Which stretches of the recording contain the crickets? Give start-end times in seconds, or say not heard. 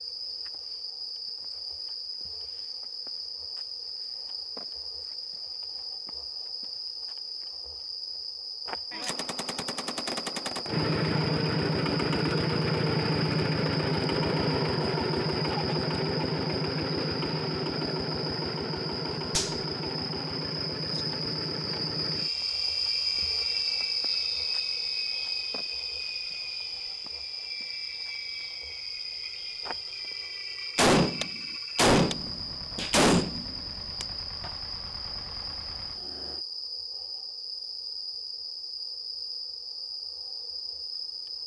0.0-41.4.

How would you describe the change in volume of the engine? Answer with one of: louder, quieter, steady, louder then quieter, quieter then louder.
quieter.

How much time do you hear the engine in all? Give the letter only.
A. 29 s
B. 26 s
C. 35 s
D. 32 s
B.